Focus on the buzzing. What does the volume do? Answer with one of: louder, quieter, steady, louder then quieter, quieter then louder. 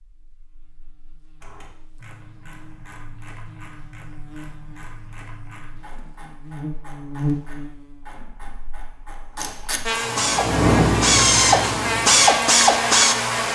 louder.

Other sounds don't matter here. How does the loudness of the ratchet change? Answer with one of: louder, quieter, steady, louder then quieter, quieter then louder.
louder.